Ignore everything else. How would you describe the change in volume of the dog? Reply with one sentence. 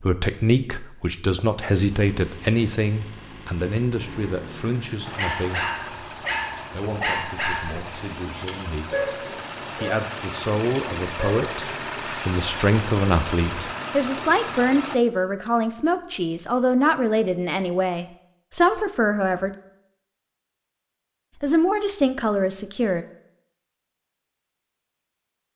The volume of the dog stays about the same.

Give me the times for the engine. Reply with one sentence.
You can hear the engine from 1.7 to 15.0 s.